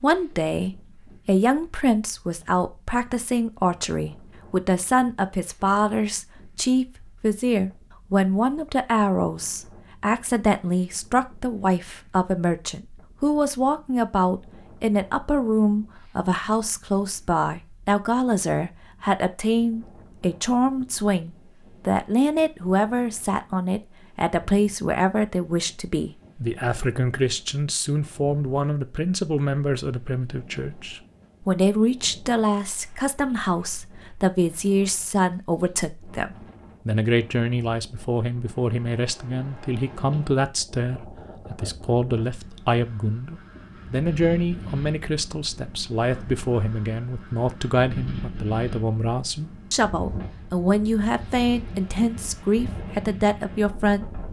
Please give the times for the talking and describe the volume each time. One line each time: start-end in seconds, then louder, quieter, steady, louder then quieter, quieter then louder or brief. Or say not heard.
0.0-54.0 steady.